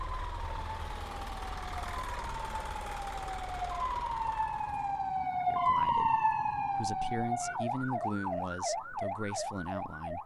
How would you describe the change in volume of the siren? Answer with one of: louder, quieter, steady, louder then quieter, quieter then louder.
louder then quieter.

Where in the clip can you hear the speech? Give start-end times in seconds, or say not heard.
5.5-10.2.